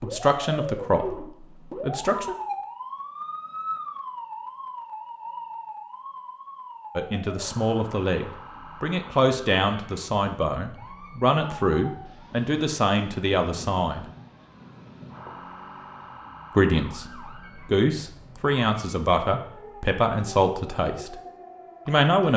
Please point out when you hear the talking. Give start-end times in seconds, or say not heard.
0.0-2.4, 7.0-14.1, 16.6-21.1, 21.9-22.3.